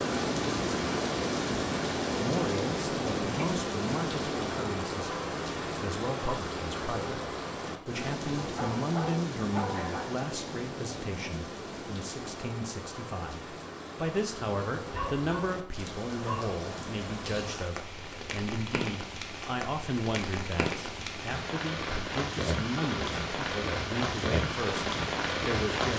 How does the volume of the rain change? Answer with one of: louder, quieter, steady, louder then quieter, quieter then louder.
quieter then louder.